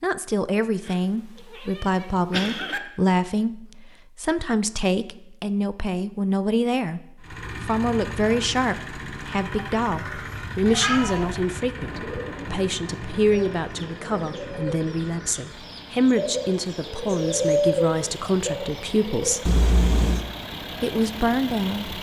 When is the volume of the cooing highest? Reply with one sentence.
The volume of the cooing peaks at 18 seconds.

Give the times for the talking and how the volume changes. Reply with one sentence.
The talking can be heard from 0.0 to 19.5 s, at a steady volume; and briefly from 20.8 to 21.9 s.